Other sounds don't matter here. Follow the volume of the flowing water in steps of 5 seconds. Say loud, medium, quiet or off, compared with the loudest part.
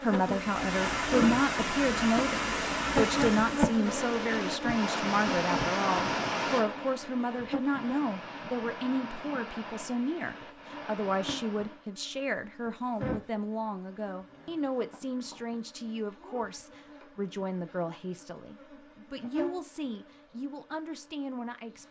loud, loud, quiet, off, off.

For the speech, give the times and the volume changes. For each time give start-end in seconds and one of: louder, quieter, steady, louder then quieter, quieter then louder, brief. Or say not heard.
0.0-21.8 quieter.